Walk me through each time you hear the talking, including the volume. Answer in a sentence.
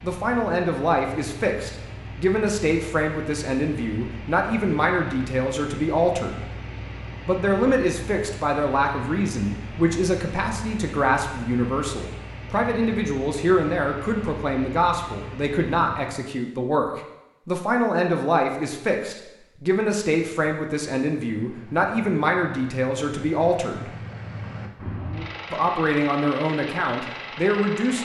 The talking can be heard from 0.0 to 6.4 s, at a steady volume; from 7.2 to 23.9 s, at a steady volume; and briefly from 25.5 to 28.0 s.